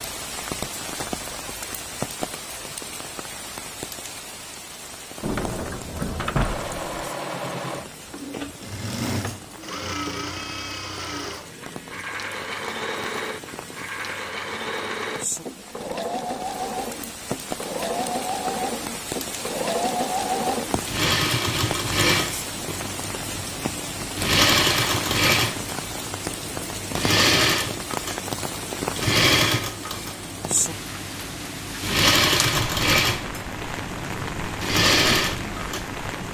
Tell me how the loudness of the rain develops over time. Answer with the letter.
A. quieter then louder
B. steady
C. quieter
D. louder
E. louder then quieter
A.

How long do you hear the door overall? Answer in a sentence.
You can hear the door for 2 seconds altogether.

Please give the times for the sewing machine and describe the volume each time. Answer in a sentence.
The sewing machine can be heard from 6.4 to 36.2 s, getting louder.